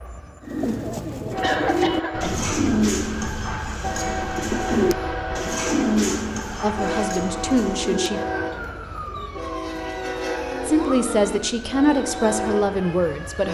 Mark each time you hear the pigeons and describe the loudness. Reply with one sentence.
You can hear the pigeons from 0.4 to 12.3 s, getting quieter.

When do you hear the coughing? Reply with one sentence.
The coughing can be heard from 1.4 to 2.3 s.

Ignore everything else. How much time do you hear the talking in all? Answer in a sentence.
You can hear the talking for 4 seconds altogether.